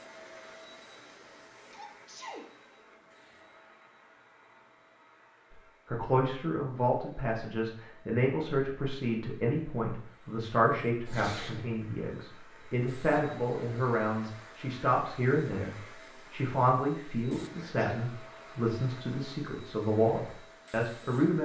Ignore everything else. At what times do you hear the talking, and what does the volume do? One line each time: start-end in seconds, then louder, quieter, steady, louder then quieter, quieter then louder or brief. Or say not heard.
5.9-21.4 steady.